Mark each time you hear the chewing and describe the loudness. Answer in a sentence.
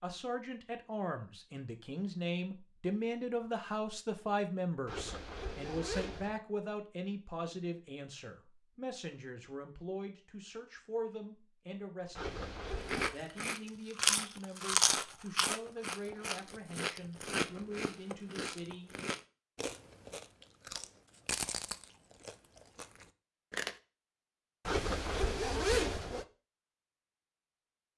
The chewing can be heard from 12.8 to 23.8 s, getting quieter.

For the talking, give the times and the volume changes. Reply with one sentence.
The talking can be heard from 0.0 to 18.9 s, getting quieter.